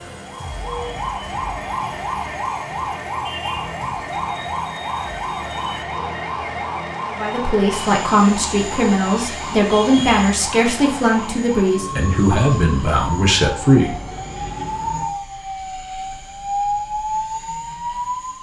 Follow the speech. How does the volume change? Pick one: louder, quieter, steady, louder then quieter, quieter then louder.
steady.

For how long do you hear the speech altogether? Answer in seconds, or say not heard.
7 s.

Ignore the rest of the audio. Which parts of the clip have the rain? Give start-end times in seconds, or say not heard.
not heard.